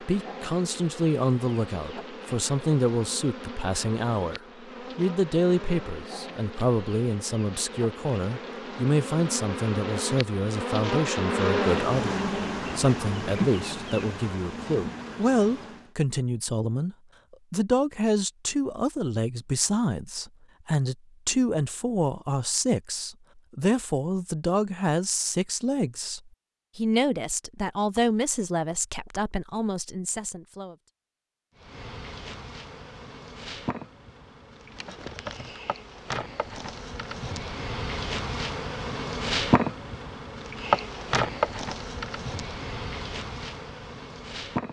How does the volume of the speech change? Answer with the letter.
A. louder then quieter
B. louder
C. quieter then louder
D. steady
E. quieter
D.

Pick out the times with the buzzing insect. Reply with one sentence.
The buzzing insect can be heard from 0.0 to 15.9 s and from 31.6 to 44.6 s.